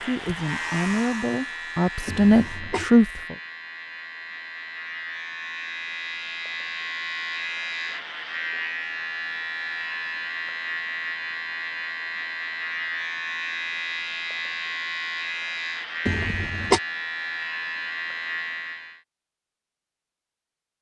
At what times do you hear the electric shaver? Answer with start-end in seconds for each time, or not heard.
0.0-19.0.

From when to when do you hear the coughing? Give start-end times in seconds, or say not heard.
2.0-2.9, 16.1-16.8.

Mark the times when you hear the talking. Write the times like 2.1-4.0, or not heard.
0.1-3.4.